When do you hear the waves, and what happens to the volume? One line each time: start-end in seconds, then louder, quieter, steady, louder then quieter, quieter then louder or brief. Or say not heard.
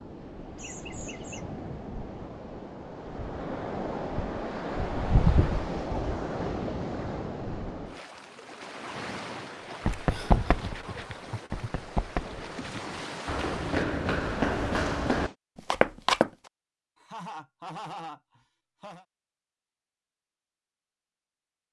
0.0-15.3 louder then quieter.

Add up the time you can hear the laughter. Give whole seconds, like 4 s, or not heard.
5 s.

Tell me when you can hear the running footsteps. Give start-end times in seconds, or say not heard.
9.8-16.3.